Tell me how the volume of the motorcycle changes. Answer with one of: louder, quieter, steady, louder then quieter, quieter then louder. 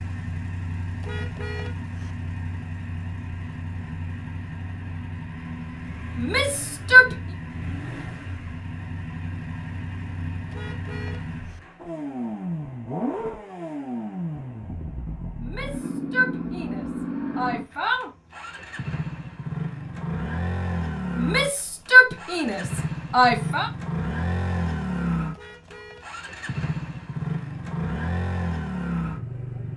louder.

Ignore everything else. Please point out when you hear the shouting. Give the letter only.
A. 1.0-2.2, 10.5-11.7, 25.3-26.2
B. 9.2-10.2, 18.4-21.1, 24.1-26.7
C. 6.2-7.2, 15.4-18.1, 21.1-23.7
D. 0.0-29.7
C.